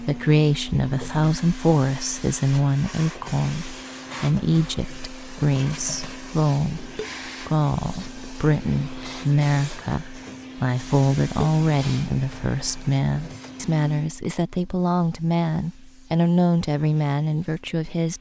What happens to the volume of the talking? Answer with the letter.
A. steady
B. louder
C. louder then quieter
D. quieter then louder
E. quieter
A.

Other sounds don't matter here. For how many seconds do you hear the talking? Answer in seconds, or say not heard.
18 s.